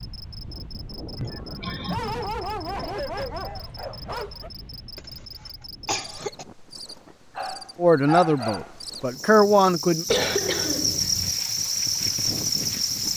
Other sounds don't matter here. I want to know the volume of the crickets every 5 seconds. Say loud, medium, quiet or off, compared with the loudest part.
quiet, quiet, loud.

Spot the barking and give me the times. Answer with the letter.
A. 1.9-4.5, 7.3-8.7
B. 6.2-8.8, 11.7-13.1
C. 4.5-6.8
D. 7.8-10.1
A.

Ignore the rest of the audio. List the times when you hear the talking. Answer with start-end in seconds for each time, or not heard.
7.8-10.1.